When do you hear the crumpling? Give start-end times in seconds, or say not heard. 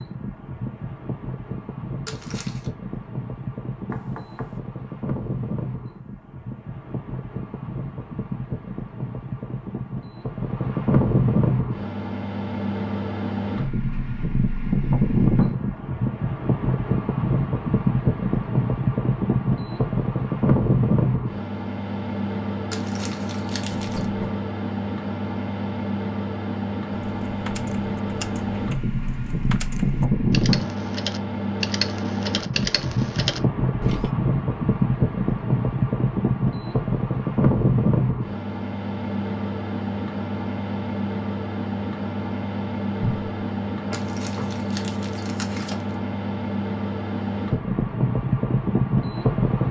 2.0-2.7, 22.7-24.1, 43.9-46.0.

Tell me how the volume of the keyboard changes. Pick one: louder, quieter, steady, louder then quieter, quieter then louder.
louder.